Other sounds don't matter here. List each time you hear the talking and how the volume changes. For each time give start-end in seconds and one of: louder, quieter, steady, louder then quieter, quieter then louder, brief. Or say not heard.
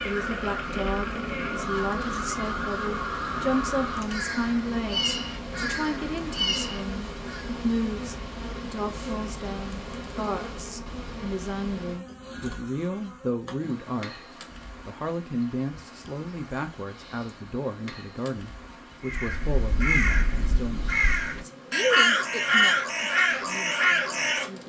0.0-24.6 steady.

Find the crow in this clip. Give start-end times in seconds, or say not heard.
0.0-7.5, 19.1-24.4.